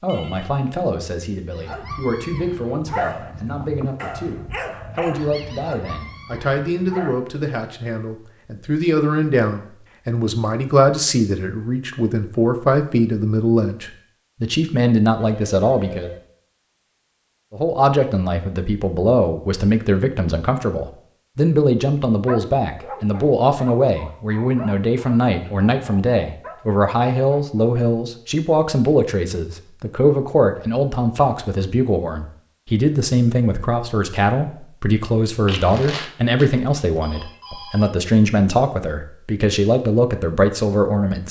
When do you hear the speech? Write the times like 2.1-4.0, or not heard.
0.0-16.1, 17.5-41.2.